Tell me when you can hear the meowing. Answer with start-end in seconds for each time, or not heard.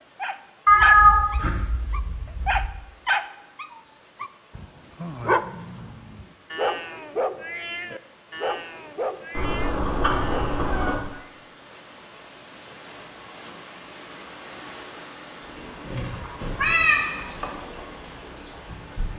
0.7-2.7, 9.3-11.0, 16.1-17.5.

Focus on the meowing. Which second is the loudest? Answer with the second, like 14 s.
1 s.